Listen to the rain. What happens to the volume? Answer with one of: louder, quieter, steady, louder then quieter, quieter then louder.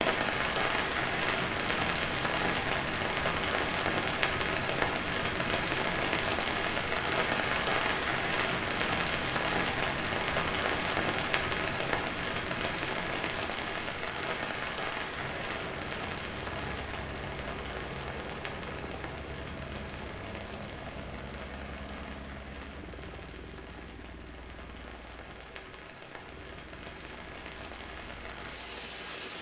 quieter.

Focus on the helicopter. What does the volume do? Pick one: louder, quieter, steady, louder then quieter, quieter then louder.
quieter.